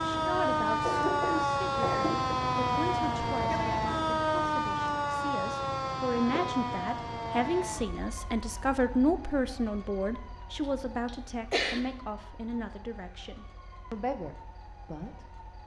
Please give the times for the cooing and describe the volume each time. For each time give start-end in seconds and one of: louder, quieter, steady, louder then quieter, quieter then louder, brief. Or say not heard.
not heard.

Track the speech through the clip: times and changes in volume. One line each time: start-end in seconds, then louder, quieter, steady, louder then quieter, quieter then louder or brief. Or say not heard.
0.0-15.2 louder then quieter.